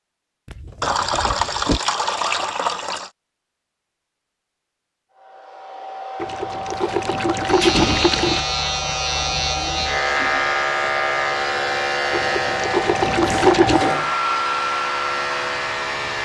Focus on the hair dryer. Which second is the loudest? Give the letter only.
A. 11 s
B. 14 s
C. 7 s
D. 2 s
B.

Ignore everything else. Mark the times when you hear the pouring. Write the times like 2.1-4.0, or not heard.
0.8-3.1, 6.2-8.4, 12.1-13.9.